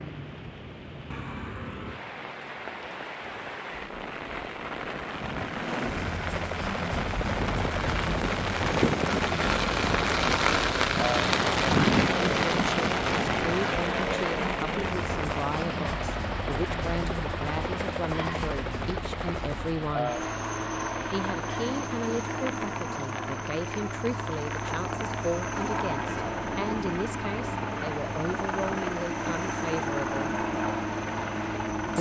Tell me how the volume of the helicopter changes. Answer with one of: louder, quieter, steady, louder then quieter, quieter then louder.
louder.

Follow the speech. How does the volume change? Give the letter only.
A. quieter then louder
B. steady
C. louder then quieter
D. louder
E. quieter
B.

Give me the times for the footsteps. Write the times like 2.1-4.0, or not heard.
not heard.